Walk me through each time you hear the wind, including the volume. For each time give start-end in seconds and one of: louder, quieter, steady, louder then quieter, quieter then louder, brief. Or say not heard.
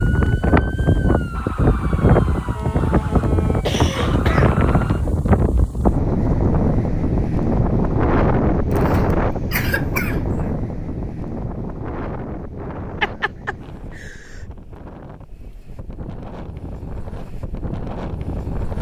0.0-18.7 quieter.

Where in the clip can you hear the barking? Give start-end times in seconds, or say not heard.
not heard.